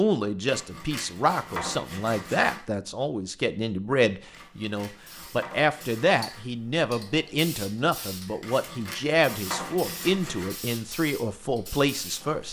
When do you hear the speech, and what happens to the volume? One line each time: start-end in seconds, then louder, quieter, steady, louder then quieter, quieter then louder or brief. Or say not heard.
0.0-12.4 steady.